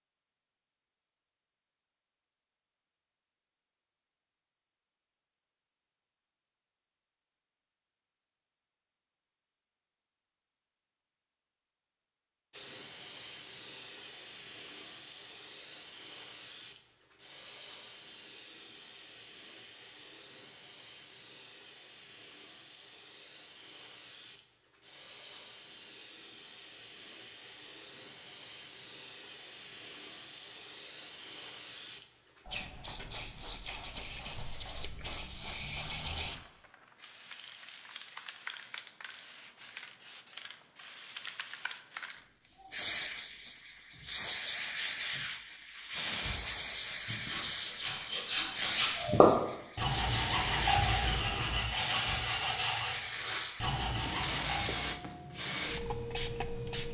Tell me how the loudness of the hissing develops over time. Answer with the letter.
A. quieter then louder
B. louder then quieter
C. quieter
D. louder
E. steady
D.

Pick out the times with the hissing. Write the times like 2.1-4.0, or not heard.
12.5-56.8.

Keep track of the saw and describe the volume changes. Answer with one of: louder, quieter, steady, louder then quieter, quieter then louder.
louder then quieter.